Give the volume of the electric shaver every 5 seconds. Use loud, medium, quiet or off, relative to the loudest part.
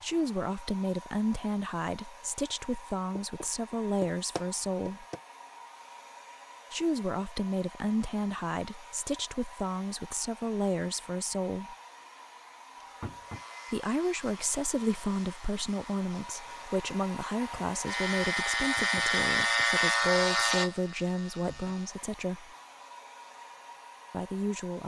off, off, quiet, loud, loud.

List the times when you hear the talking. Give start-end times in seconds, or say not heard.
0.0-5.0, 6.7-11.8, 13.7-22.5, 24.1-24.8.